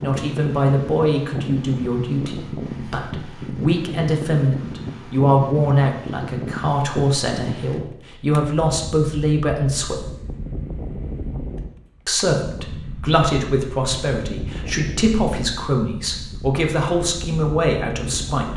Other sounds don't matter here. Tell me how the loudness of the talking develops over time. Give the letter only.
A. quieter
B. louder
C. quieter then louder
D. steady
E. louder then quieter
D.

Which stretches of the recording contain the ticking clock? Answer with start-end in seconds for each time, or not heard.
not heard.